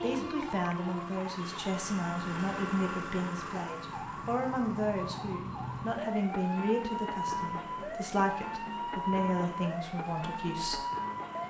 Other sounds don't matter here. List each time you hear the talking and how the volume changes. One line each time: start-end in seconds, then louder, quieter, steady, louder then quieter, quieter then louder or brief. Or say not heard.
0.0-10.8 steady.